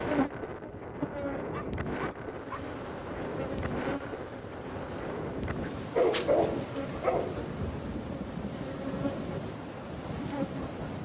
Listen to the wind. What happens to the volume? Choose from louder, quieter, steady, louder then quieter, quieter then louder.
steady.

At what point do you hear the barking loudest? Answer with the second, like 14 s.
6 s.